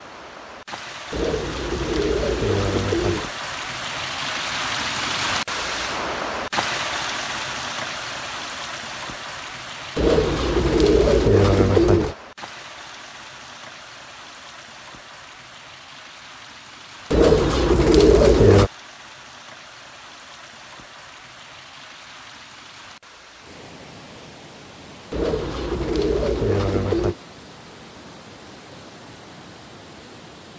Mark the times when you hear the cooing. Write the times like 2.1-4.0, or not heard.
1.1-3.3, 9.9-12.2, 17.1-18.7, 25.1-27.1.